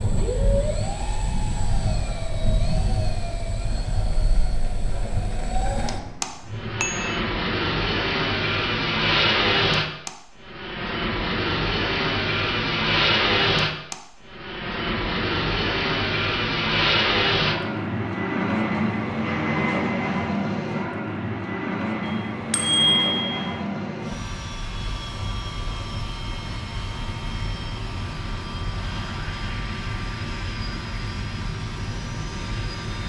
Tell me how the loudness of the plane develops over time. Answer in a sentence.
The loudness of the plane goes up, then down.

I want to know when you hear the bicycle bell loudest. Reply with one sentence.
The loudest moment of the bicycle bell is at 23 seconds.